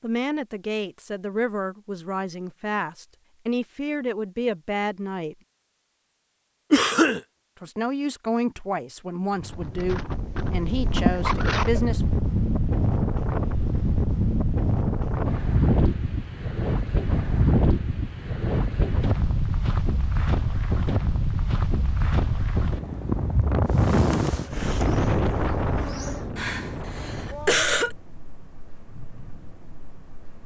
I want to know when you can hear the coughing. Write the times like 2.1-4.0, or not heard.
6.7-7.2, 11.1-11.8, 26.4-27.9.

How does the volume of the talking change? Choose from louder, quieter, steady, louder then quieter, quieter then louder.
steady.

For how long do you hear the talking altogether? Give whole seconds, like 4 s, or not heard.
10 s.